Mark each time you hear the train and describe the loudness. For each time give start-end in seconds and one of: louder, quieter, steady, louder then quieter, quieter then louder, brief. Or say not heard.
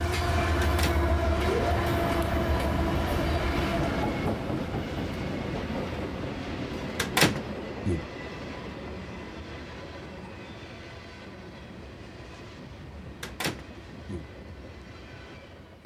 0.0-15.8 quieter.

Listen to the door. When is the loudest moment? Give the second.
7 s.